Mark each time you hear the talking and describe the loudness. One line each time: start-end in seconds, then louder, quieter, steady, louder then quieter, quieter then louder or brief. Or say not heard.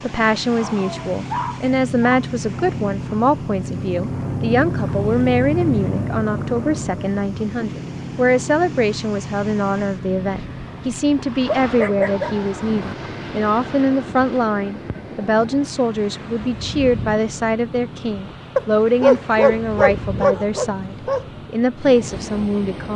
0.0-22.9 steady.